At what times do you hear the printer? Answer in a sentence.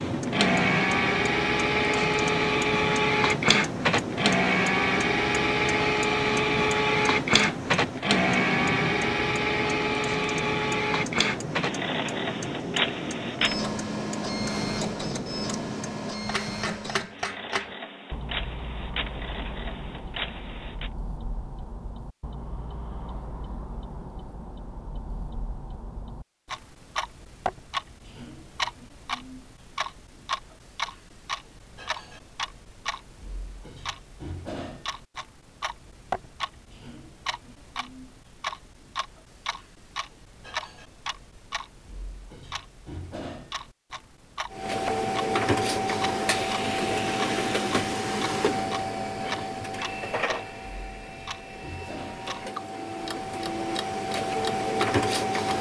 You can hear the printer from 0.0 to 20.9 s and from 44.5 to 55.5 s.